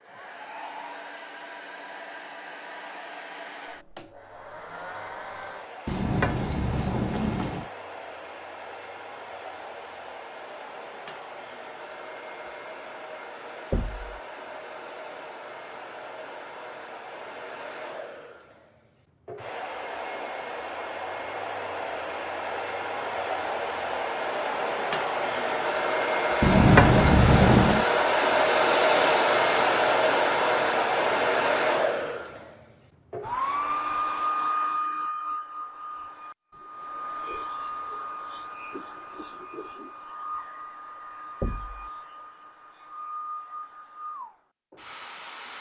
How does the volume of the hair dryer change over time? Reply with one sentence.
The volume of the hair dryer goes up, then down.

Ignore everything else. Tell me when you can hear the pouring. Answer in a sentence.
The pouring can be heard from 5.8 to 7.7 s and from 26.4 to 27.9 s.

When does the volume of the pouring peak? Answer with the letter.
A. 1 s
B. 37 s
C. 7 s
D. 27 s
D.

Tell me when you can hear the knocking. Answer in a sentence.
You can hear the knocking from 13.7 to 14.2 s and from 41.4 to 41.9 s.